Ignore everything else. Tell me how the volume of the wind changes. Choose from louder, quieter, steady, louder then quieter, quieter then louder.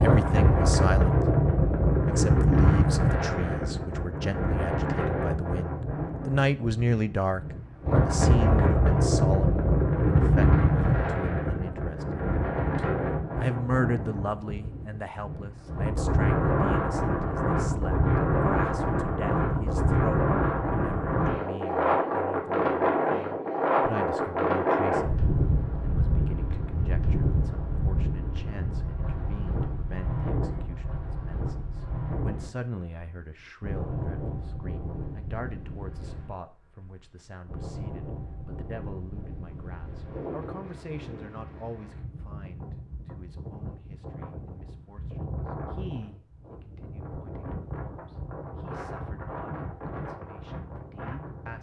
quieter.